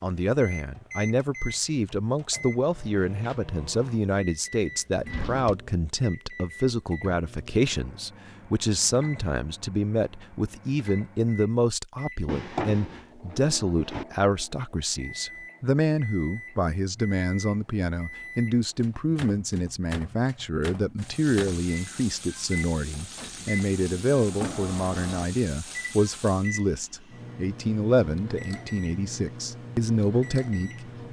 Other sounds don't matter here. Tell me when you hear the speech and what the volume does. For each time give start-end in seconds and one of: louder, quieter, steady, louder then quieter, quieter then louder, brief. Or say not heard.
0.0-31.0 steady.